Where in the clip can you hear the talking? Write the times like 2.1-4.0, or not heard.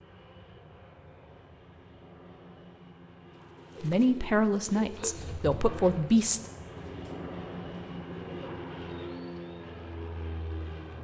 3.8-6.4.